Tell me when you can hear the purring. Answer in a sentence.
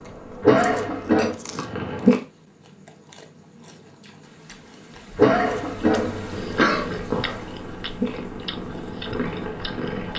You can hear the purring from 0.0 to 2.2 s and from 6.2 to 10.1 s.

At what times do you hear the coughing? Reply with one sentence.
You can hear the coughing from 0.4 to 1.4 s and from 5.2 to 6.8 s.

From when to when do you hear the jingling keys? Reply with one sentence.
You can't hear the jingling keys here.